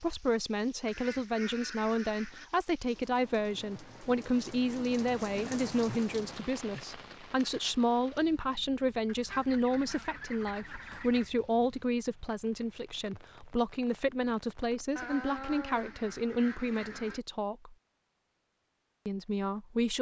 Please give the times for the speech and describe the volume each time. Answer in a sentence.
You can hear the speech from 0.0 to 17.8 s, at a steady volume; and briefly from 19.1 to 19.9 s.